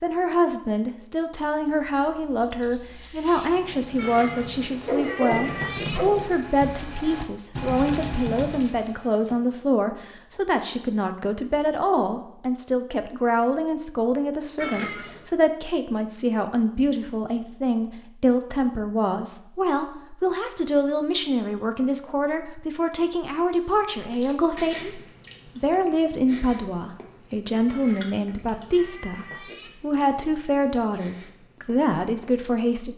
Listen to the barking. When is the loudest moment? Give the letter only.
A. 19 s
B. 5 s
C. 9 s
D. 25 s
B.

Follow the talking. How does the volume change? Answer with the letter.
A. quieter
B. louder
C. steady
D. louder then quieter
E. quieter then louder
C.